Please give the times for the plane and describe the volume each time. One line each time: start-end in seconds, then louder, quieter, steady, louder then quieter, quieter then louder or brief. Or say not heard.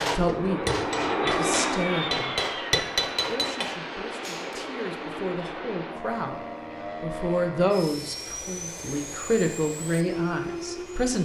0.0-11.1 quieter.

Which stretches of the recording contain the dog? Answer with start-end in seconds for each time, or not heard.
not heard.